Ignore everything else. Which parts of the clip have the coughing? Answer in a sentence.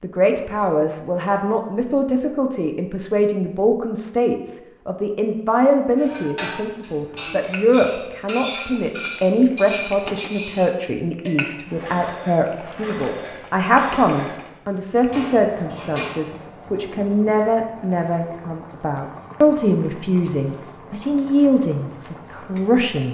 The coughing can't be heard in this clip.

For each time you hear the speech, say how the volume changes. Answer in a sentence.
The speech can be heard from 0.0 to 23.0 s, at a steady volume.